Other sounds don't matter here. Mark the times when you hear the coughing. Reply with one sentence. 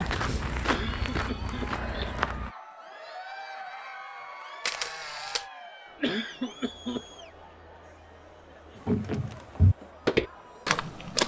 The coughing can be heard from 0.7 to 2.2 s and from 6.0 to 7.0 s.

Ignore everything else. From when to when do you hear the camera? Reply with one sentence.
You can hear the camera from 4.6 to 5.5 s.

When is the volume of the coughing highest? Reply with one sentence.
The volume of the coughing peaks at 6 seconds.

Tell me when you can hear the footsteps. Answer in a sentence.
The footsteps can be heard from 0.0 to 2.5 s and from 8.8 to 11.2 s.